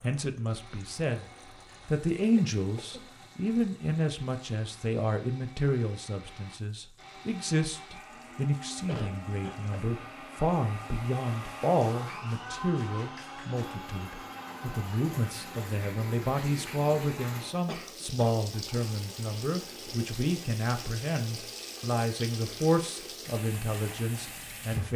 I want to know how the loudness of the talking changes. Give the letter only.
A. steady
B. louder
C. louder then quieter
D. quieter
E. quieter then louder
A.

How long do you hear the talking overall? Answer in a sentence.
The talking can be heard for 25 seconds in total.